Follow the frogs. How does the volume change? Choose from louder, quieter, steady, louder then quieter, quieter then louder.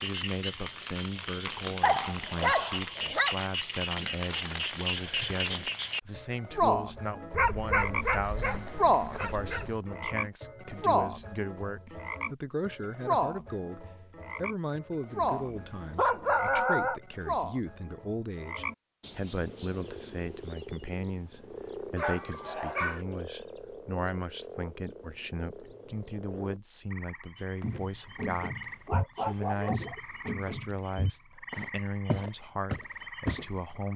quieter.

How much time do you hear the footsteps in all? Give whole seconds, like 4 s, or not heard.
6 s.